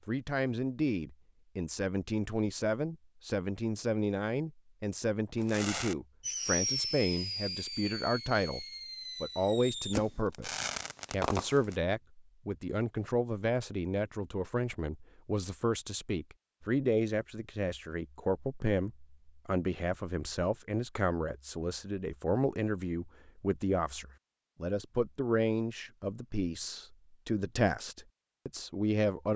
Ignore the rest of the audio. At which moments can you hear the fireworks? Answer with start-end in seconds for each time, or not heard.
5.4-11.8.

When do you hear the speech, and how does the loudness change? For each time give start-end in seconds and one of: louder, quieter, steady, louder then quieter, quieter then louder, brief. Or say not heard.
0.1-29.3 steady.